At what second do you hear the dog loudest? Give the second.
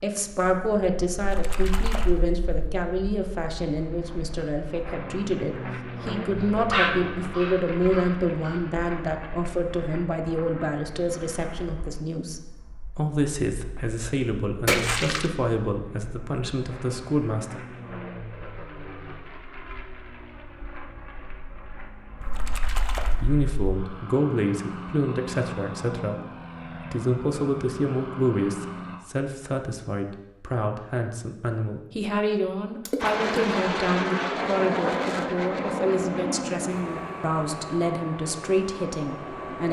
7 s.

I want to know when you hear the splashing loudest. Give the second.
15 s.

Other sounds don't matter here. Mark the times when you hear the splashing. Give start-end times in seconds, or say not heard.
1.1-2.5, 14.7-15.2, 22.2-23.4, 32.9-33.5.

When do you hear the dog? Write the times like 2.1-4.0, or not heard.
6.4-8.6.